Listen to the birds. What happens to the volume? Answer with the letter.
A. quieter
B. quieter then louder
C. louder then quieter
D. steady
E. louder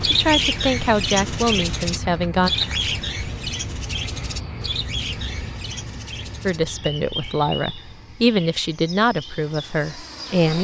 A.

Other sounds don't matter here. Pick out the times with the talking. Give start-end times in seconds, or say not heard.
0.1-2.5, 6.5-10.5.